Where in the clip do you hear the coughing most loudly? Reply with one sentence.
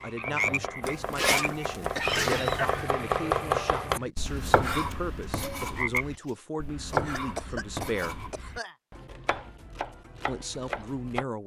The loudest moment of the coughing is at 2 seconds.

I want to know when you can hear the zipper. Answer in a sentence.
The zipper can be heard from 0.8 to 2.9 s.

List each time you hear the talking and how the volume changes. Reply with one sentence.
The talking can be heard from 0.0 to 8.2 s, at a steady volume; and briefly from 10.2 to 11.4 s.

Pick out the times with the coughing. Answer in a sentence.
You can hear the coughing from 1.2 to 2.8 s and from 6.9 to 8.8 s.